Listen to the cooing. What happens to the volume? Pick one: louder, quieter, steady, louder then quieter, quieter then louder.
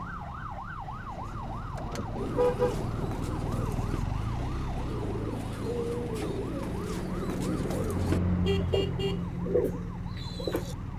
louder.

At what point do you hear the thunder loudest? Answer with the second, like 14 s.
3 s.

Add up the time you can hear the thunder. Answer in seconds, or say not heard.
3 s.